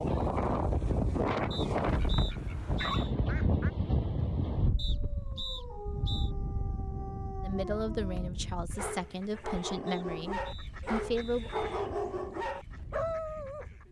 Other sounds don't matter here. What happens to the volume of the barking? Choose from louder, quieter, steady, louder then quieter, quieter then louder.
louder.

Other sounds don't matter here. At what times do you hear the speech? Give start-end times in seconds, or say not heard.
7.4-11.5.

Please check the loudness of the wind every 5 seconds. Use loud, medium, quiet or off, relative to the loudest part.
loud, medium, quiet.